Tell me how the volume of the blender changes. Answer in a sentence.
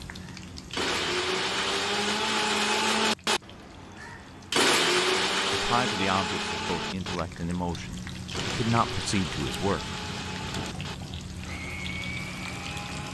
The loudness of the blender goes down.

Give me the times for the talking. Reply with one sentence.
You can hear the talking from 5.5 to 9.9 s.